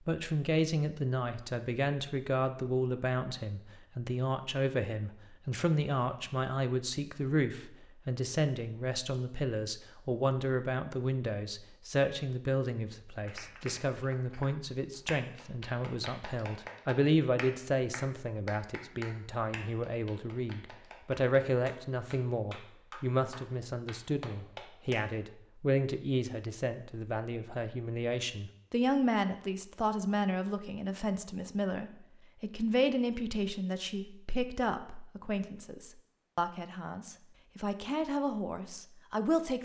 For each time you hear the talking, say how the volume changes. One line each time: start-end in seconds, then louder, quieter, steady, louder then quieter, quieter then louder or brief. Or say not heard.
0.1-39.5 steady.